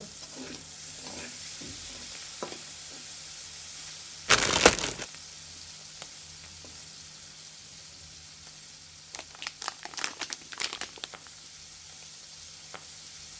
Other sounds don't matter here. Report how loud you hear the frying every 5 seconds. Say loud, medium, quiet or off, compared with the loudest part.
loud, medium, medium.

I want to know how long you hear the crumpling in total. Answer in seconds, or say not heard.
3 s.